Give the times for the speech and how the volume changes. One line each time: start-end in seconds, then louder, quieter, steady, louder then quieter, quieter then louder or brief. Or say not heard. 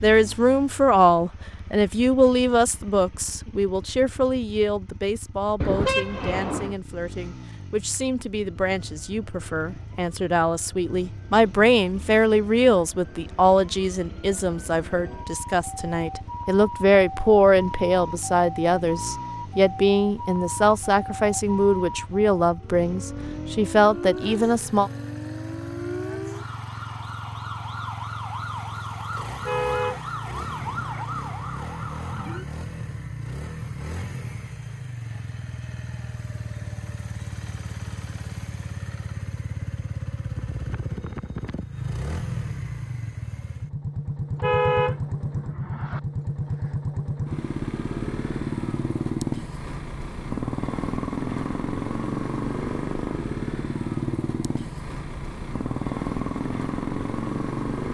0.0-24.9 quieter then louder.